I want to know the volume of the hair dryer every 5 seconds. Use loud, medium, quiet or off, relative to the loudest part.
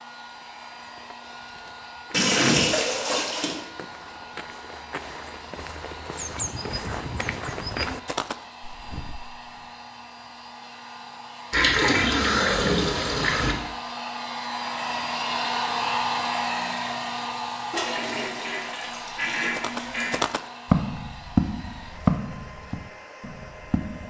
quiet, quiet, medium, loud, quiet.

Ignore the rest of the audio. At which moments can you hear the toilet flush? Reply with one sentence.
You can hear the toilet flush from 2.1 to 3.5 s, from 11.5 to 13.6 s and from 17.7 to 20.2 s.